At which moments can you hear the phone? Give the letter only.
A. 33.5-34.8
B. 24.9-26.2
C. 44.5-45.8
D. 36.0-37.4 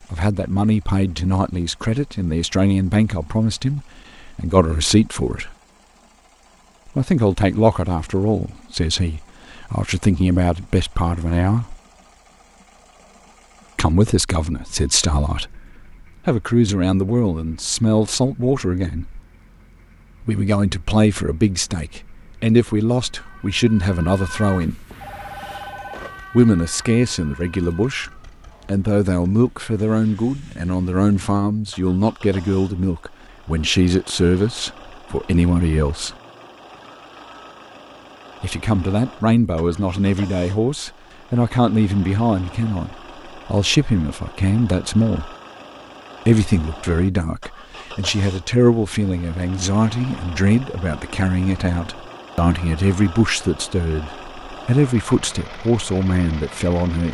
B.